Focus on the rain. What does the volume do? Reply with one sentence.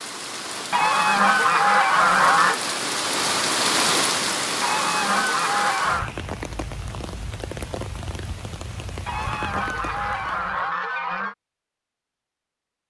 The loudness of the rain goes up, then down.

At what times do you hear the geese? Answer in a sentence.
You can hear the geese from 0.7 to 2.6 s, from 4.6 to 6.1 s and from 9.1 to 11.3 s.